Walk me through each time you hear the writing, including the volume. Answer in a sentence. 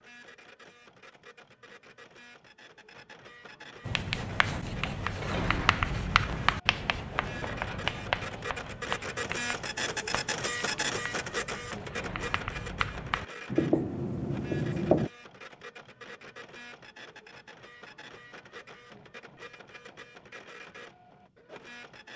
The writing can be heard from 3.9 to 15.1 s, getting quieter then louder.